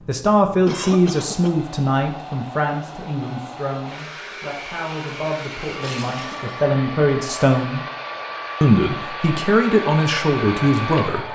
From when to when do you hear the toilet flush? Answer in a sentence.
You can hear the toilet flush from 5.8 to 6.5 s.